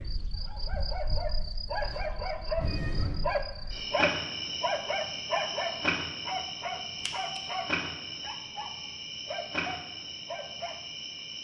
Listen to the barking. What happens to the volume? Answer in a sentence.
The volume of the barking goes down.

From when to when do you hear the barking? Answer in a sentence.
You can hear the barking from 0.3 to 10.9 s.